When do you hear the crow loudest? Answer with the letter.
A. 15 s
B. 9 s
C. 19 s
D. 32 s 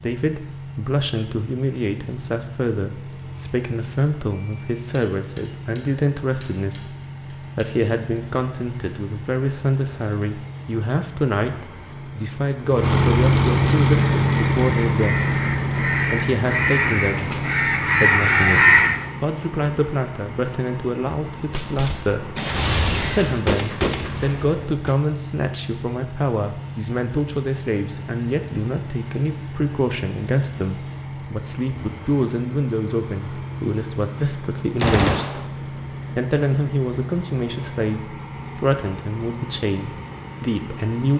C.